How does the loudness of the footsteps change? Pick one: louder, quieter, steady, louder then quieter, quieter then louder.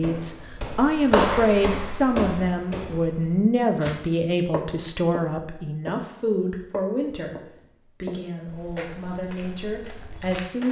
quieter.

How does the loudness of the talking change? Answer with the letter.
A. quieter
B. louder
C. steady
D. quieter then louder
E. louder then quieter
A.